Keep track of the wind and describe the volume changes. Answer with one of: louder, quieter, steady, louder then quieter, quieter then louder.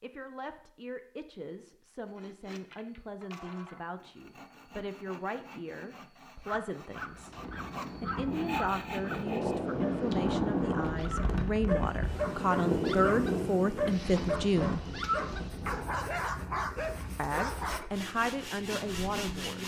louder then quieter.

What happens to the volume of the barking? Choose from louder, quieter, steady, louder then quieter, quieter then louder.
louder.